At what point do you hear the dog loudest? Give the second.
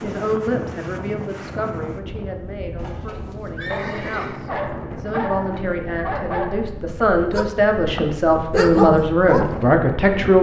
9 s.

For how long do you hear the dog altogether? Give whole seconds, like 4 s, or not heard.
6 s.